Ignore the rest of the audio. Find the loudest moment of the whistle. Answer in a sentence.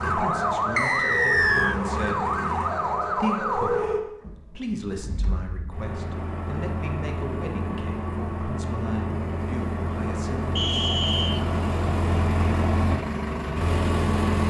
The loudest moment of the whistle is at 1 second.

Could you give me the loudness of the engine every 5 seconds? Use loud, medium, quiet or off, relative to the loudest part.
loud, medium, loud.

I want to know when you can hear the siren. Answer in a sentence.
You can hear the siren from 0.0 to 3.9 s.